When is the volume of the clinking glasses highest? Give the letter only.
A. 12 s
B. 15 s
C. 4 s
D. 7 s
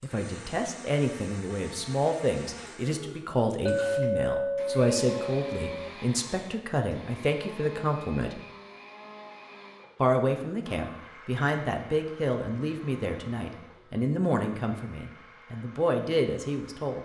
C.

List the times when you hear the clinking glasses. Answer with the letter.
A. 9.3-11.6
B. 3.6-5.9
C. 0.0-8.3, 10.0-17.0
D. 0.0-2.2
B.